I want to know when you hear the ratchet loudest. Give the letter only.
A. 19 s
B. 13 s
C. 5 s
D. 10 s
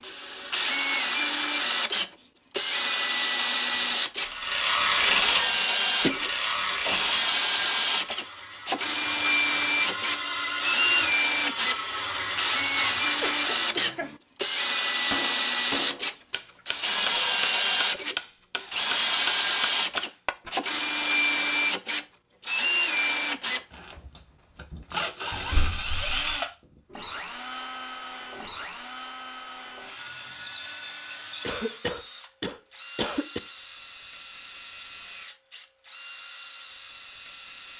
C.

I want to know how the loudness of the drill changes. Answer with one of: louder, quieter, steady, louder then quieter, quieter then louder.
quieter.